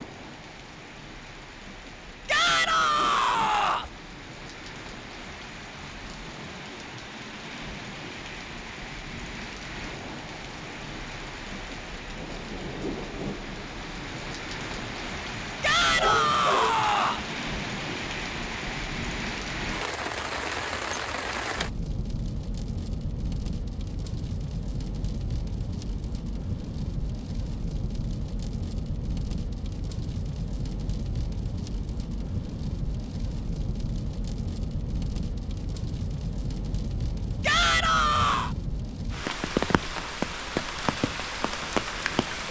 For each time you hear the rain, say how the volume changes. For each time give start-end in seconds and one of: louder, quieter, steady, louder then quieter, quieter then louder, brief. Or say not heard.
0.0-42.4 louder.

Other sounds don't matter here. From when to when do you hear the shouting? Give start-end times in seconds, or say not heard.
2.2-3.9, 15.6-17.2, 37.4-38.5.